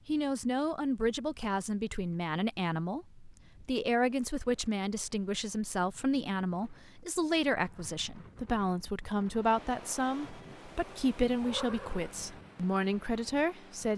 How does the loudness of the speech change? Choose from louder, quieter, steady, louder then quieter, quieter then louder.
steady.